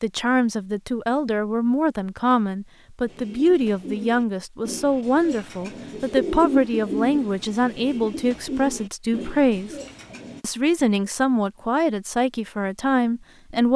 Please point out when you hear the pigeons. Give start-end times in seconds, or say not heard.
3.0-10.4.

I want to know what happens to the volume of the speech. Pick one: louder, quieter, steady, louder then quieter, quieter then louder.
steady.